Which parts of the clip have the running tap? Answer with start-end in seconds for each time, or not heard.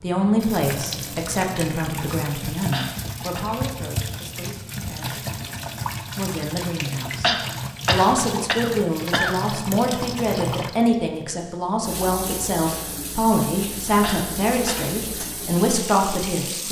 0.0-16.6.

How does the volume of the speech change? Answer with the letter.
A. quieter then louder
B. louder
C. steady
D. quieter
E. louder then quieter
A.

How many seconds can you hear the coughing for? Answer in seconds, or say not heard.
4 s.